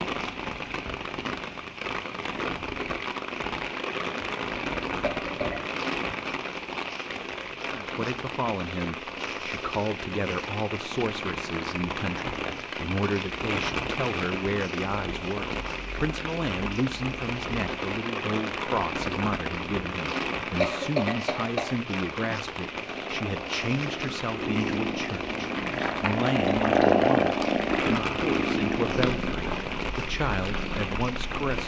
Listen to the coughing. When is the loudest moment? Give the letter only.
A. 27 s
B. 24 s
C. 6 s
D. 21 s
D.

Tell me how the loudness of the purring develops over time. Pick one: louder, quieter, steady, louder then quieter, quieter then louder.
louder then quieter.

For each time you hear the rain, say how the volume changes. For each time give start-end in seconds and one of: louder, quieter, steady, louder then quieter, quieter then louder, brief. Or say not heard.
0.0-31.6 steady.